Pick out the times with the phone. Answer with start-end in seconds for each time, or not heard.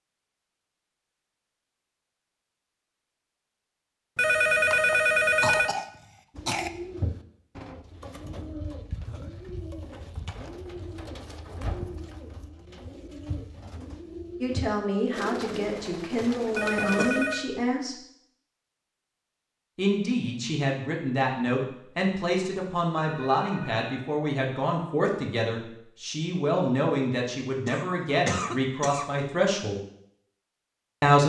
4.2-5.8, 16.6-17.4, 23.0-24.1.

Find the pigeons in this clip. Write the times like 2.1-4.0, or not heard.
6.3-17.2.